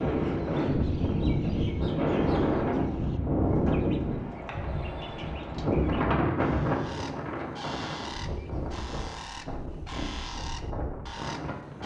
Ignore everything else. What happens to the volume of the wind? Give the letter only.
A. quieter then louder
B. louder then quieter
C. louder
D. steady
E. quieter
E.